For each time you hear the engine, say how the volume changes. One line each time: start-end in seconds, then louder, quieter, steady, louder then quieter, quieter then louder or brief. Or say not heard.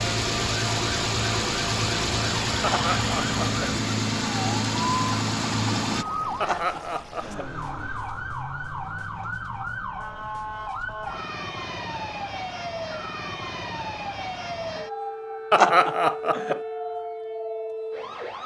0.0-6.0 steady.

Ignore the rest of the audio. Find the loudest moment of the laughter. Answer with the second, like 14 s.
16 s.